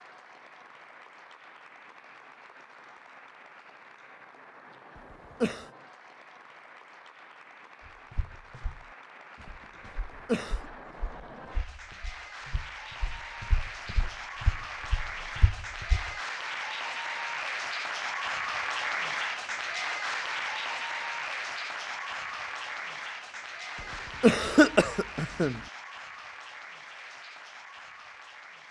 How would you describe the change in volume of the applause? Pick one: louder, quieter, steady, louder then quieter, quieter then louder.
louder then quieter.